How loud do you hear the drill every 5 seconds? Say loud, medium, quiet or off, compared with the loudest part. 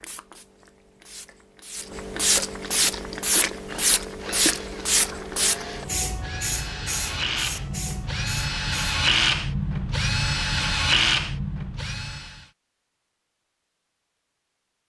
quiet, loud, loud.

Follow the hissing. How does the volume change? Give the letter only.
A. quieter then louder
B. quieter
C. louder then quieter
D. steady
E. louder
C.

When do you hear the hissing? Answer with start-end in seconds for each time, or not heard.
0.0-9.0.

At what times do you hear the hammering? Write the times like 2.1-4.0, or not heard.
not heard.